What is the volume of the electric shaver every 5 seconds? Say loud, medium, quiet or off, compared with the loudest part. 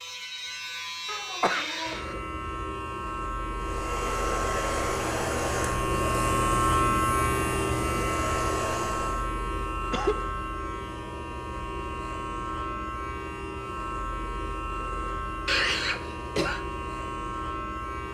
medium, loud, medium, medium.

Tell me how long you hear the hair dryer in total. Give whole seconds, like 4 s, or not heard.
6 s.